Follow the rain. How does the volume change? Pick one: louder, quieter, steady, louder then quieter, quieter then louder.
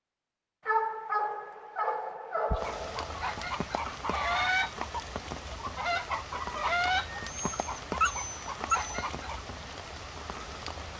steady.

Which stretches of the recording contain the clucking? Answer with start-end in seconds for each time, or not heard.
2.5-9.4.